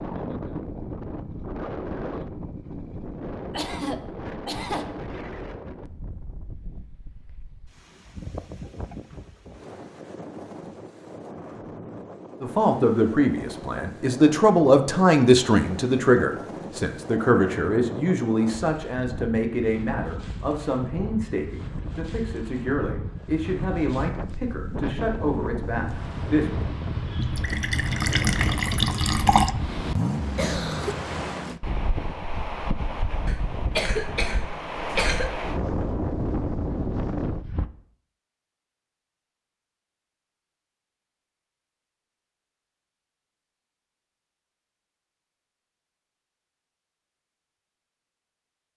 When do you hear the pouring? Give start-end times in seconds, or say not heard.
27.1-29.6.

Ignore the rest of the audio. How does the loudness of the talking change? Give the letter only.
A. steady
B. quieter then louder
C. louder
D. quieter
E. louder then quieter
D.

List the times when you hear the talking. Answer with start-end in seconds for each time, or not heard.
12.4-26.5.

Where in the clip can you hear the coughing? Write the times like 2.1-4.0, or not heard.
3.5-4.9, 30.4-30.9, 33.2-35.3.